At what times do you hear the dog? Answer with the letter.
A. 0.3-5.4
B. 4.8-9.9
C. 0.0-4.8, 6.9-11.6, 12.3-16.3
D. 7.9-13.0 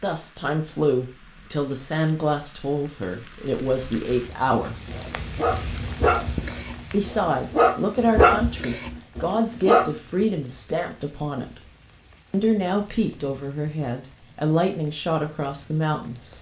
B.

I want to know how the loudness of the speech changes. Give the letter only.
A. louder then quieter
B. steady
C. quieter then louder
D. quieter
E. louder
B.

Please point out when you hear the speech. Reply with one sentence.
You can hear the speech from 0.0 to 4.8 s, from 6.9 to 11.6 s and from 12.3 to 16.3 s.